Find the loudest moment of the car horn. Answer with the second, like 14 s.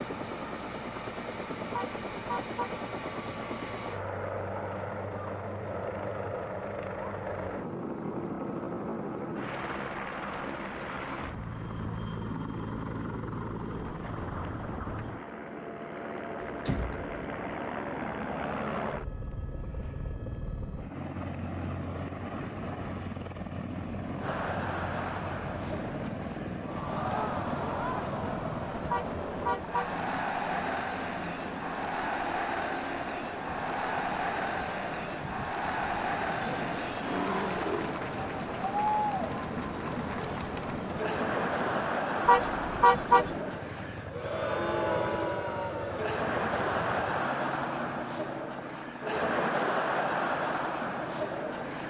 43 s.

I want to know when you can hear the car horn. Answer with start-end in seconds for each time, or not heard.
1.7-2.8, 28.9-29.9, 42.2-43.3.